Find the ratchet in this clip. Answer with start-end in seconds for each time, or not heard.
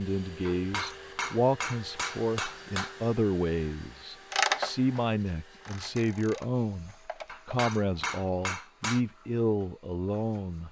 4.3-8.3.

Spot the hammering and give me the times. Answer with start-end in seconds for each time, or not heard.
0.5-3.0, 7.2-9.0.